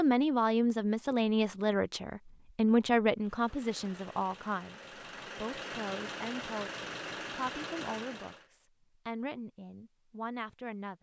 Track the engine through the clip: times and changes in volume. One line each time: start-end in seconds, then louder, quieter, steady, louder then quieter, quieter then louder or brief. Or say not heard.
3.2-8.4 louder.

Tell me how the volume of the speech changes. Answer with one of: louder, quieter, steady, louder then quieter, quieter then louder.
quieter.